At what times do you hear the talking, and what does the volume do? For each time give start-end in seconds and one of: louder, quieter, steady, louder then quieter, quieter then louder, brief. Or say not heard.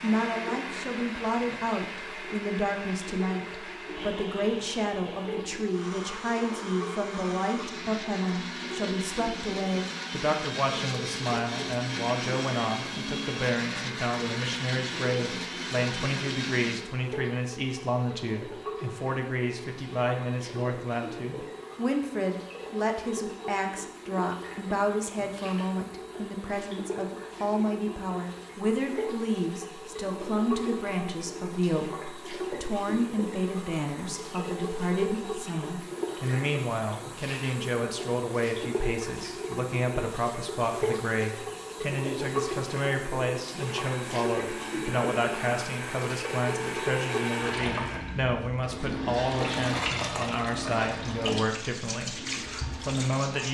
0.0-52.1 steady
52.8-53.4 brief.